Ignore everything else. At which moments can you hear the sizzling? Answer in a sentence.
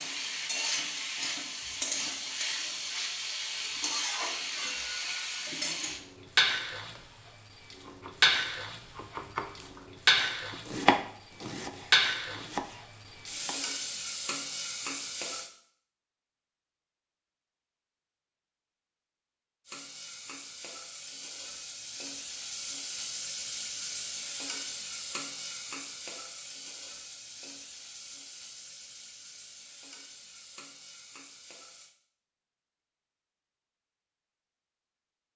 You can hear the sizzling from 0.0 to 15.5 s and from 19.6 to 31.9 s.